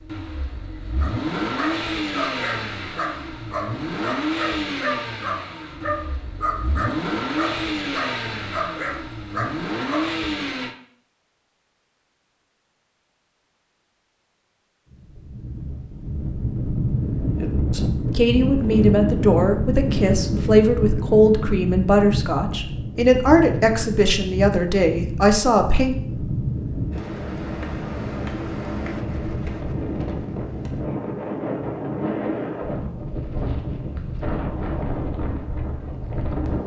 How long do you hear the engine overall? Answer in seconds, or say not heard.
11 s.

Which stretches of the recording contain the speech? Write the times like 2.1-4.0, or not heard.
17.7-25.9.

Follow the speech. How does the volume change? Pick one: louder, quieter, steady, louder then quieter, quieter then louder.
steady.